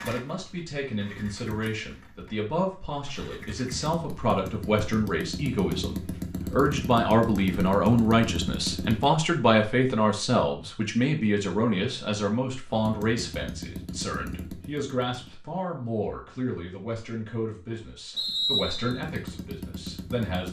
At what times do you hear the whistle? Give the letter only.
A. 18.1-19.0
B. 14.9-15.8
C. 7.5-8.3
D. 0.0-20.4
A.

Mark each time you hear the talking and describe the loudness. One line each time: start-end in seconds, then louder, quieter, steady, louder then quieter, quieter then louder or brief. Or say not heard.
0.0-20.4 louder then quieter.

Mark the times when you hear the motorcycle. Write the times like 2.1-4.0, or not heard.
0.0-9.1, 12.7-15.4, 18.9-20.4.